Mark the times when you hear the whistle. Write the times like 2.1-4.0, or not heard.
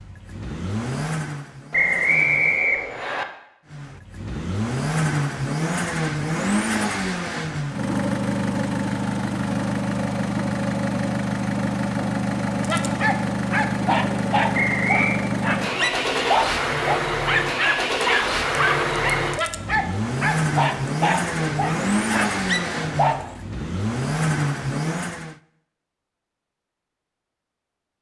1.7-3.2, 14.5-15.2.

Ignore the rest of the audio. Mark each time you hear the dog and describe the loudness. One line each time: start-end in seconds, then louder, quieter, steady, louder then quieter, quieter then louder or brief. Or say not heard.
12.6-23.4 steady.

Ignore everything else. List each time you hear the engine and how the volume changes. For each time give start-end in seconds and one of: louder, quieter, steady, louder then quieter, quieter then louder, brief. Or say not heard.
0.0-2.6 brief
3.7-25.4 steady.